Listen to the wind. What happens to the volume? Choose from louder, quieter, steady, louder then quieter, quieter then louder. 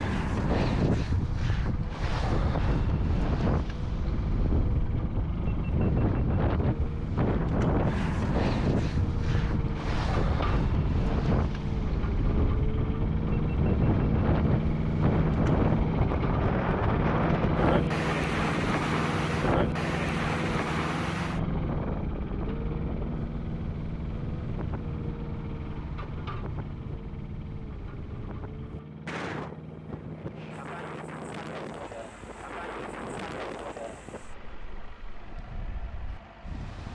quieter.